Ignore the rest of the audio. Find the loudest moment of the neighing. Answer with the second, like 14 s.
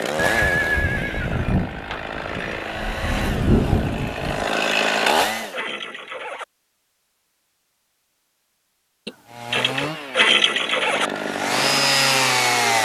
10 s.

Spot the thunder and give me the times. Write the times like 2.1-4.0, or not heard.
0.7-4.5.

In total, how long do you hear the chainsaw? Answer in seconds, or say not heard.
9 s.